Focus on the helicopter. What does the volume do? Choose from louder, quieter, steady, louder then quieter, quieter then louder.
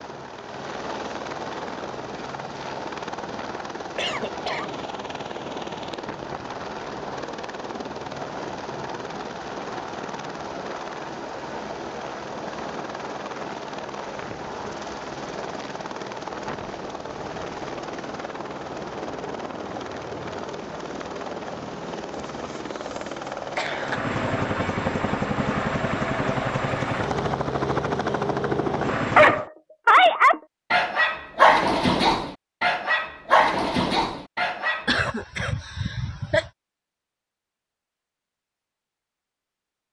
louder.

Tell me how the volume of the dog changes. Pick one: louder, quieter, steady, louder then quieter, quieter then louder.
quieter.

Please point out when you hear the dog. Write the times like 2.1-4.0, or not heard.
29.1-35.1.